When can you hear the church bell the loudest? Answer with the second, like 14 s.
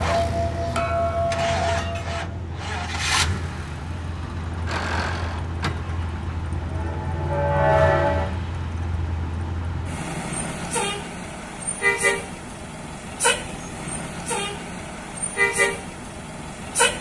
8 s.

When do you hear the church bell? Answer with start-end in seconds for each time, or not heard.
0.0-2.4, 6.5-8.4.